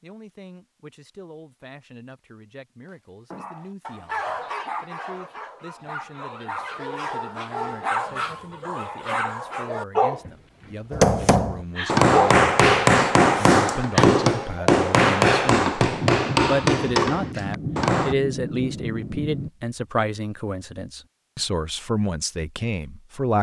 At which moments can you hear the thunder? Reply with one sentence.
You can hear the thunder from 15.9 to 19.5 s.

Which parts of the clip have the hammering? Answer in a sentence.
You can hear the hammering from 10.9 to 18.1 s.